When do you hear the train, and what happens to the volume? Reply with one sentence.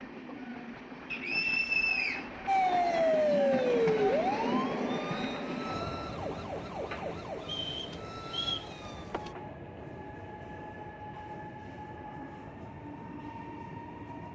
The train can be heard from 0.0 to 14.2 s, getting louder then quieter.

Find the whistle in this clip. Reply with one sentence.
The whistle can be heard from 1.1 to 2.3 s and from 7.4 to 8.7 s.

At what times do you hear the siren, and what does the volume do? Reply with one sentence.
The siren can be heard from 2.5 to 9.3 s, getting quieter.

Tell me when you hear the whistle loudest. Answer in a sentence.
The loudest moment of the whistle is at 2 seconds.